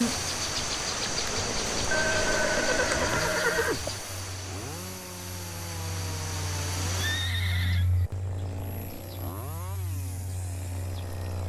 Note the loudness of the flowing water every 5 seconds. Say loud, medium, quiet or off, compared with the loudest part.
loud, medium, off.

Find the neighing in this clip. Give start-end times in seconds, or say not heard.
1.9-3.9, 7.0-7.8.